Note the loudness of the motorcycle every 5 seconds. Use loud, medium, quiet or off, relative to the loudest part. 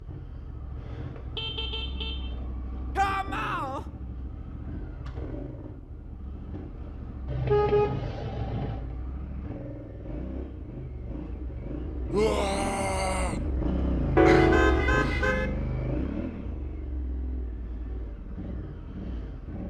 medium, medium, loud, loud.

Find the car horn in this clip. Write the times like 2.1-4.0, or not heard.
1.4-2.4, 7.2-8.8, 14.2-15.5.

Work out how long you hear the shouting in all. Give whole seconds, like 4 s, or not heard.
2 s.